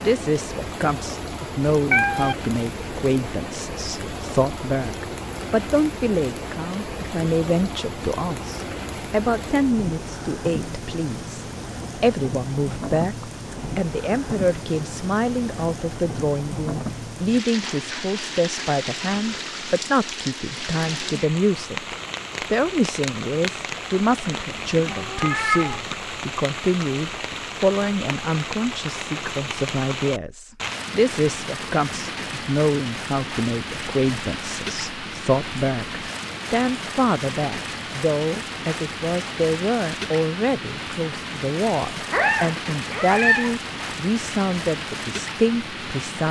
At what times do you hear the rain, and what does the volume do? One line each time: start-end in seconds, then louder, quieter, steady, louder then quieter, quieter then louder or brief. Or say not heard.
0.0-46.2 steady.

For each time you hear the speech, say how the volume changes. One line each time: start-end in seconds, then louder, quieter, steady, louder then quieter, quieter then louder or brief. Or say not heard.
0.0-46.2 steady.